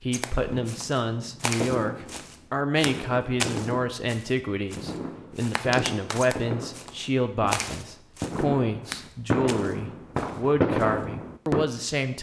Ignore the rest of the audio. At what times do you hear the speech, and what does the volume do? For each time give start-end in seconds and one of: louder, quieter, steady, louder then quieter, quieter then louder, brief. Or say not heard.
0.0-12.1 steady.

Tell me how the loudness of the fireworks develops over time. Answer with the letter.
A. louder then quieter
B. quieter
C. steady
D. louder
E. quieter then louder
D.